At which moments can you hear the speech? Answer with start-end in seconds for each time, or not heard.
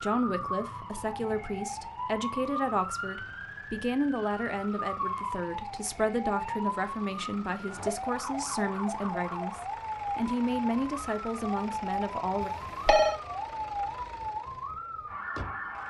0.0-12.5.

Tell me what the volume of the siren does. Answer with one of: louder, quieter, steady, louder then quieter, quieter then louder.
steady.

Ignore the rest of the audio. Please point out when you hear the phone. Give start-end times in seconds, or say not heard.
12.4-13.2.